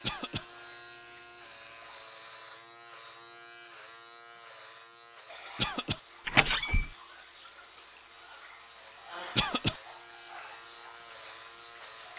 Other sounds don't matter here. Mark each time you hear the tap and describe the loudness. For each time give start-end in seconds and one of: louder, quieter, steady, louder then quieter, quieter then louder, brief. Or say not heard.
0.0-2.0 brief
5.2-12.1 steady.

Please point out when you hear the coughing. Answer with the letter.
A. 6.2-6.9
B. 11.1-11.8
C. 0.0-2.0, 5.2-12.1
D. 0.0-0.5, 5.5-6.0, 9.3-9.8
D.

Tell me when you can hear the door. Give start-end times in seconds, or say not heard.
6.2-6.9.